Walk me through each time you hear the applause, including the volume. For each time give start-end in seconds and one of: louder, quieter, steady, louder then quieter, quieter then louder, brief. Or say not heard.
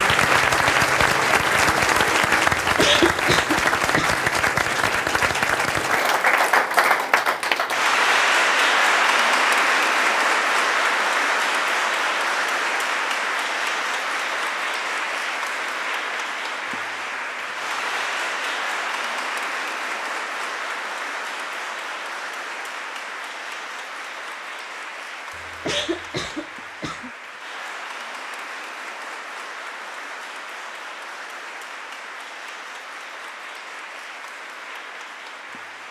0.0-35.8 quieter.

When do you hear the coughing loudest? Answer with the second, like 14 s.
3 s.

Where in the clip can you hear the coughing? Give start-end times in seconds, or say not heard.
2.6-4.2, 25.4-27.1.